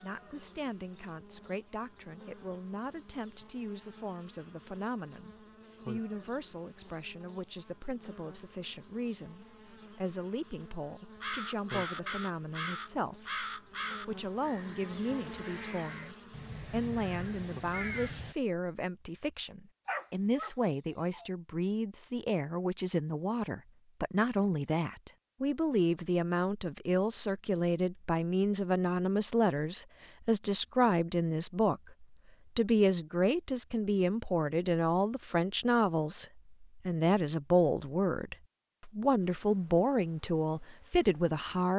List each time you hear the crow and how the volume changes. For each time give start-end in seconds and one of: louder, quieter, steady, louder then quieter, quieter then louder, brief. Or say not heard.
11.2-18.4 quieter then louder.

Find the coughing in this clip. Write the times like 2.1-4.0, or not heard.
not heard.